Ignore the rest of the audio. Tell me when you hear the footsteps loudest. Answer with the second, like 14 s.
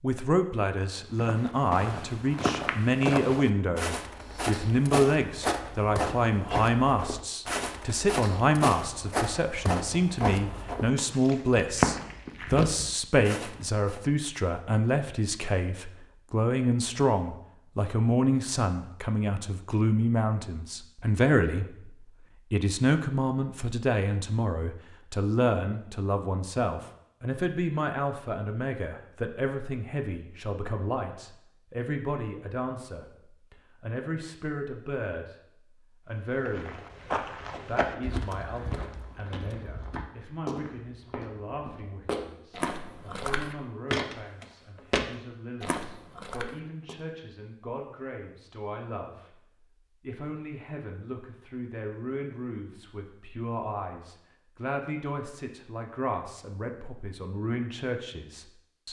12 s.